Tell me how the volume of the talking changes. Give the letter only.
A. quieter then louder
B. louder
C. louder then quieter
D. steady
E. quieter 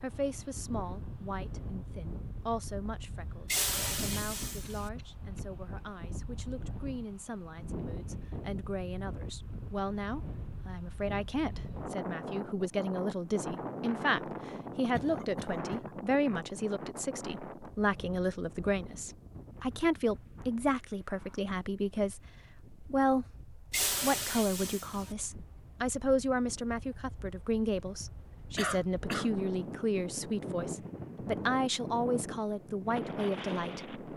B.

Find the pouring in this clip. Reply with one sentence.
The pouring can be heard from 3.5 to 4.9 s and from 23.7 to 25.1 s.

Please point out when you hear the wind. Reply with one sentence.
The wind can be heard from 0.0 to 34.1 s.